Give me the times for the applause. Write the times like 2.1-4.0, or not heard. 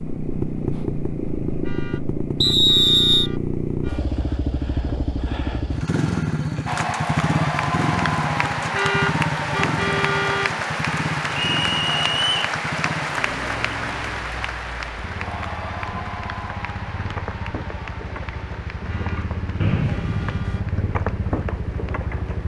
6.7-22.4.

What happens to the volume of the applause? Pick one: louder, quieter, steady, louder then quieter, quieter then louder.
quieter.